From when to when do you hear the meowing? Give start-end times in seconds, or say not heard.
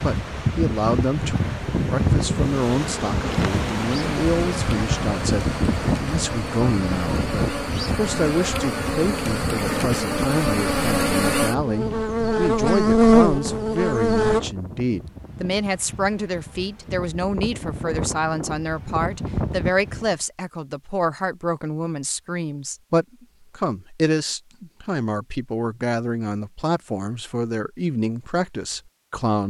not heard.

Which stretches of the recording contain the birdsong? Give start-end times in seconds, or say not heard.
not heard.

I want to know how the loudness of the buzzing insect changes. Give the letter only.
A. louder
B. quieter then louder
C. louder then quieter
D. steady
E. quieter
A.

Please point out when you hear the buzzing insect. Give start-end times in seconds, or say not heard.
2.1-14.4.